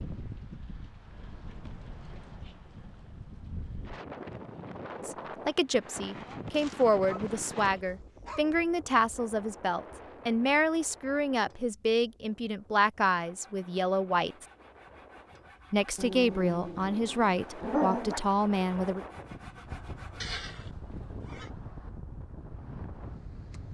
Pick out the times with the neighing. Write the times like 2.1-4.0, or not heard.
20.2-21.5.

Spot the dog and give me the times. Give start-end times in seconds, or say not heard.
6.5-8.4, 15.9-18.2.